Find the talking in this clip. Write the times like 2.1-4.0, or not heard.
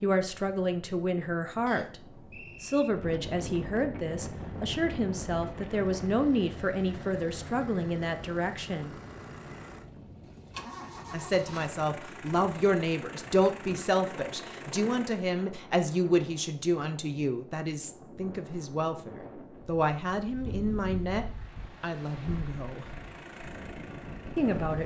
0.0-2.0, 2.6-8.9, 11.1-22.9, 24.4-24.8.